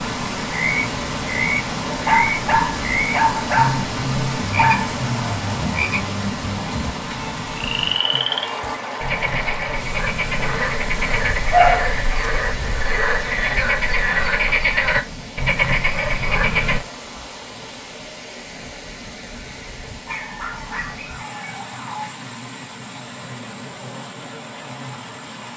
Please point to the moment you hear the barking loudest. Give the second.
12 s.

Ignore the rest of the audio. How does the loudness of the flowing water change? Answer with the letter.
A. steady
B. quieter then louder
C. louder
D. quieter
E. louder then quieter
D.